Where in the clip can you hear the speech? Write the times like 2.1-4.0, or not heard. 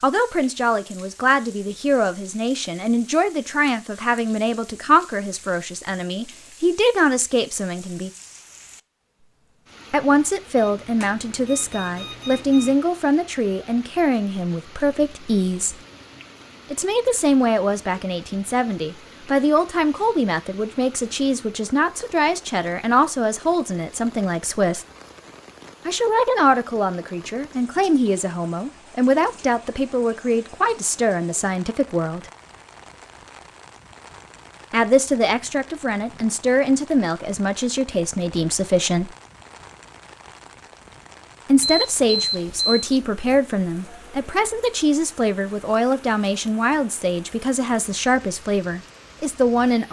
0.0-8.1, 9.9-15.8, 16.7-24.9, 25.9-32.2, 34.7-39.1, 41.5-49.8.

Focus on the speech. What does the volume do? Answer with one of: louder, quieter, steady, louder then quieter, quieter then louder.
steady.